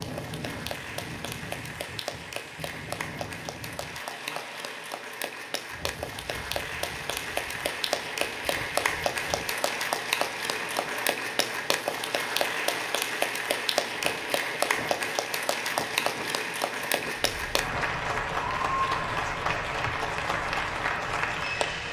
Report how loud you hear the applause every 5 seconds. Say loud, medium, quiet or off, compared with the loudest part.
medium, loud, loud, loud, loud.